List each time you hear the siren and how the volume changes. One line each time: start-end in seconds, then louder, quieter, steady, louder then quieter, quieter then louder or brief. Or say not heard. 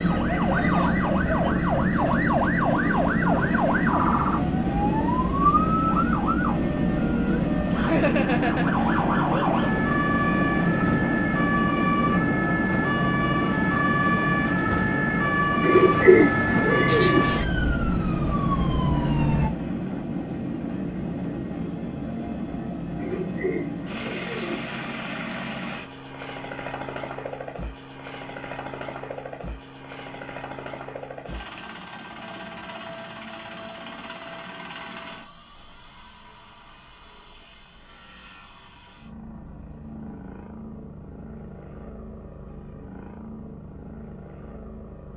0.0-19.5 steady.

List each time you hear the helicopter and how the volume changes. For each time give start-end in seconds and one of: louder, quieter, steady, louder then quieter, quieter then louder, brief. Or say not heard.
0.0-45.1 quieter.